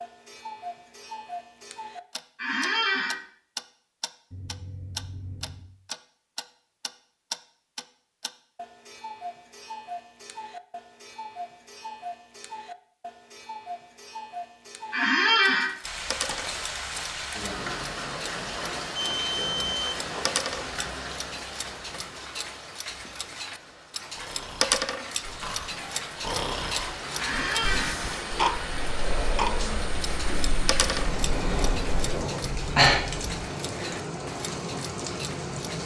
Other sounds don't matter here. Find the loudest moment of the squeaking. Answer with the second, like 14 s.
15 s.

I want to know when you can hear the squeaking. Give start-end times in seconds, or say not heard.
2.4-3.2, 14.9-15.7, 27.1-27.9.